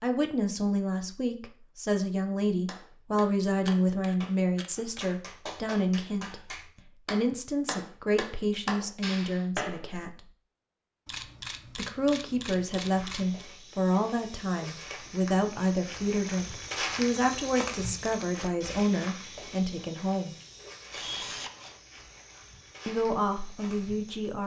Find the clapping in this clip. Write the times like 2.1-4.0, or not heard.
2.6-10.1.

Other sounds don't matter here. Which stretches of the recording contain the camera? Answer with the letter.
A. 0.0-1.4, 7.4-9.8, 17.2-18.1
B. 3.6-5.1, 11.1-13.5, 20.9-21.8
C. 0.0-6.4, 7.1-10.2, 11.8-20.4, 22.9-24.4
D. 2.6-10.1
B.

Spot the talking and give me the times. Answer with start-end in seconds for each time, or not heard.
0.0-6.4, 7.1-10.2, 11.8-20.4, 22.9-24.4.